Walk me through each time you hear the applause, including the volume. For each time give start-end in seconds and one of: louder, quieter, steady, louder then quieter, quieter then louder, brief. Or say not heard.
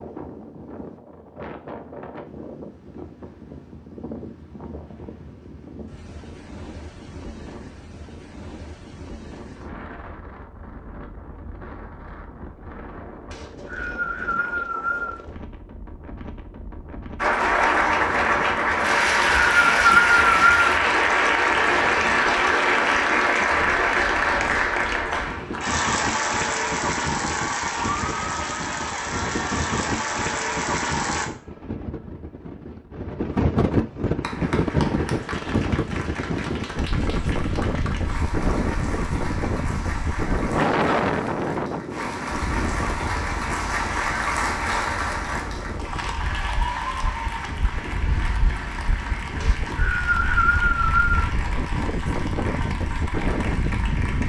17.2-31.2 quieter
34.2-54.2 louder then quieter.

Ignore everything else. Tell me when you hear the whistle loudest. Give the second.
20 s.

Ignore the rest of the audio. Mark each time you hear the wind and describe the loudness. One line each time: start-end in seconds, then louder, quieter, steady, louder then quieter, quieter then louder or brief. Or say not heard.
0.0-54.2 louder then quieter.